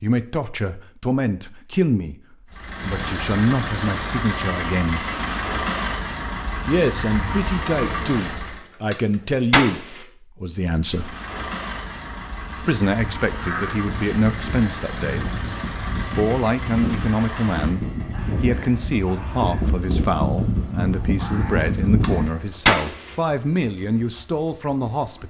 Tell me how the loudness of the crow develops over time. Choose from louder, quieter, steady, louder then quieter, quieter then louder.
louder.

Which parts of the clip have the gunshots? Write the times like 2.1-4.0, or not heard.
8.9-10.0, 22.0-23.1.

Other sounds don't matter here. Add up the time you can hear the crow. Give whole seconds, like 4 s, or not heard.
9 s.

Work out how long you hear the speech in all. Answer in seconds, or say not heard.
21 s.